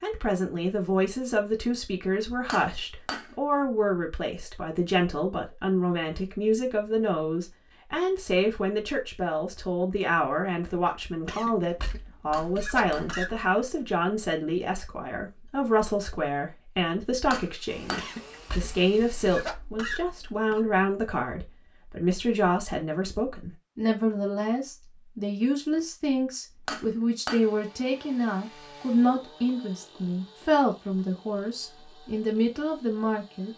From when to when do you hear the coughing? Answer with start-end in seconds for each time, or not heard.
11.2-13.5, 17.9-20.6.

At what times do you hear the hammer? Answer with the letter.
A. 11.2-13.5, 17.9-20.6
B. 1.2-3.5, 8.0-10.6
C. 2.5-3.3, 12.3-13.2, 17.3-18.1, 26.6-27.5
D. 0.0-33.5
C.